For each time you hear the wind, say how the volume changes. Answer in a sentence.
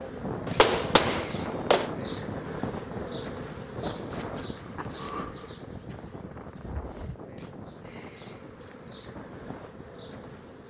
You can hear the wind from 0.0 to 10.6 s, getting quieter.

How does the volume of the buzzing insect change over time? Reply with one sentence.
The volume of the buzzing insect goes down.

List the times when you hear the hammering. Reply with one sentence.
You can hear the hammering from 0.5 to 1.9 s.